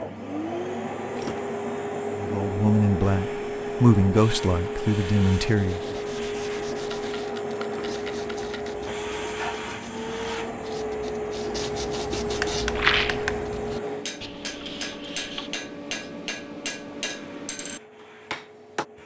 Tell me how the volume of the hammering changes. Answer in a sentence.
The volume of the hammering stays about the same.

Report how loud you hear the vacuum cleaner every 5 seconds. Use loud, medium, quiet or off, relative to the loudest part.
loud, loud, loud, quiet.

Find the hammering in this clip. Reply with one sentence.
The hammering can be heard from 12.2 to 18.9 s.